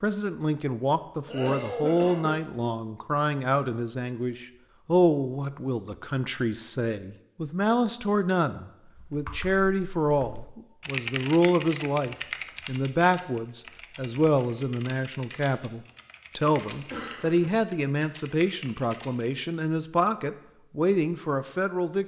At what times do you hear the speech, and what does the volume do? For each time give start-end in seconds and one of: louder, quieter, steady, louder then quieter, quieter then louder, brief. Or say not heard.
0.0-22.0 steady.